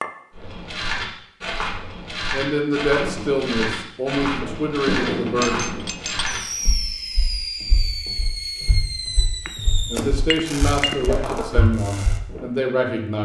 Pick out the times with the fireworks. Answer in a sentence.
The fireworks can be heard from 3.0 to 12.6 s.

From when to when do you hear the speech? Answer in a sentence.
You can hear the speech from 2.3 to 5.7 s and from 9.9 to 13.1 s.